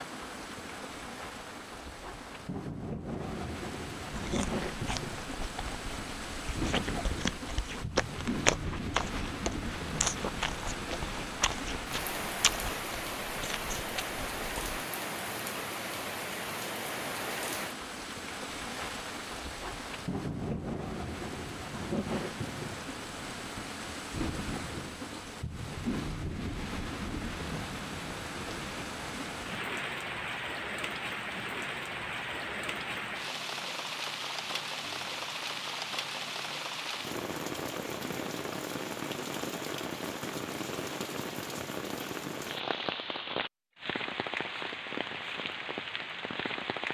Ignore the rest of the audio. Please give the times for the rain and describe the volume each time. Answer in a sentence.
The rain can be heard from 0.0 to 46.9 s, at a steady volume.